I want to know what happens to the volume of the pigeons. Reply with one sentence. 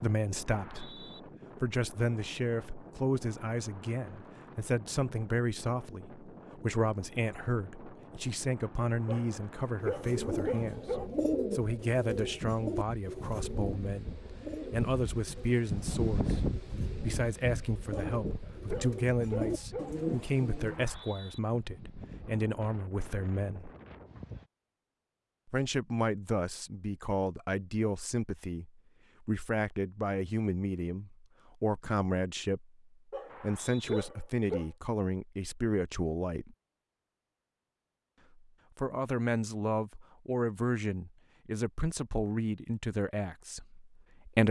The loudness of the pigeons goes down, then up.